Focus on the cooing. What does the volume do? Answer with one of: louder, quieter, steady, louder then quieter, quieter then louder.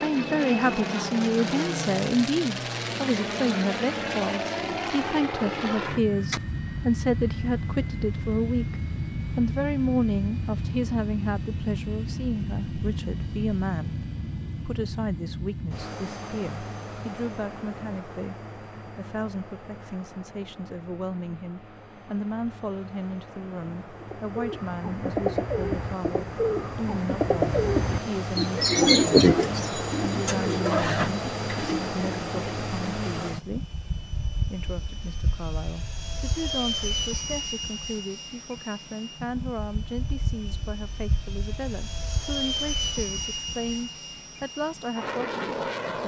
louder then quieter.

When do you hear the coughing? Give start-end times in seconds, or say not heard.
not heard.